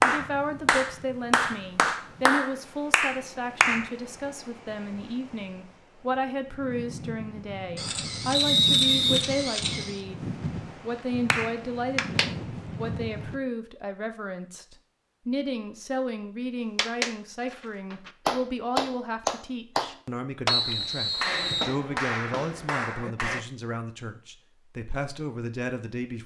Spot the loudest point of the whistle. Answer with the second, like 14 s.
9 s.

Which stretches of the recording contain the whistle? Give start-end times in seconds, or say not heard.
8.3-9.2, 20.4-21.8.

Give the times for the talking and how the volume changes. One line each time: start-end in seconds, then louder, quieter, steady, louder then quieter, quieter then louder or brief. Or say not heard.
0.0-26.2 steady.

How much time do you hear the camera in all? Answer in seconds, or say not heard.
2 s.